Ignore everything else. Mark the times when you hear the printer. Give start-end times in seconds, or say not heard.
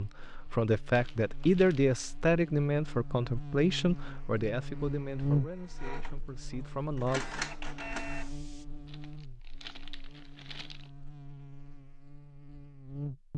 5.0-8.7.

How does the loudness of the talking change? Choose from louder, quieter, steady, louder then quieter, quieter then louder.
quieter.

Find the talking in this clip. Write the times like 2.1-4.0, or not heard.
0.0-7.2.